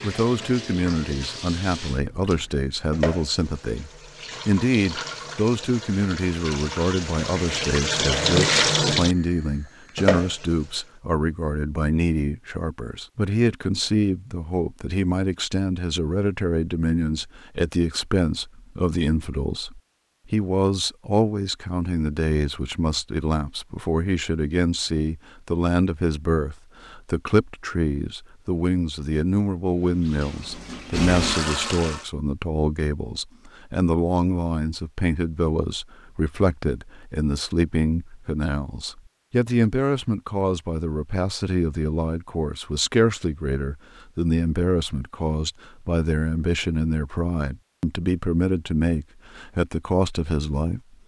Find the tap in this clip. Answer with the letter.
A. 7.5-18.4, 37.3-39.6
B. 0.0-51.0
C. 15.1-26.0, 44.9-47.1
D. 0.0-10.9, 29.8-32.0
D.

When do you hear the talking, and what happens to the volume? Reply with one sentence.
You can hear the talking from 0.0 to 51.0 s, at a steady volume.